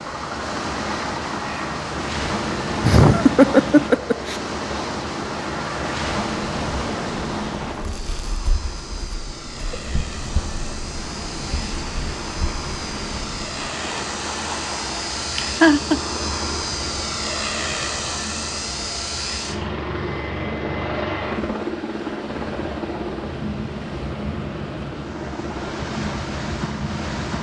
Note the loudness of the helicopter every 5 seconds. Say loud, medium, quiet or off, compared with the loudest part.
medium, medium, medium, loud, loud, medium.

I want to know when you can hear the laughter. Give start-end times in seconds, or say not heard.
2.8-4.4, 15.3-16.0.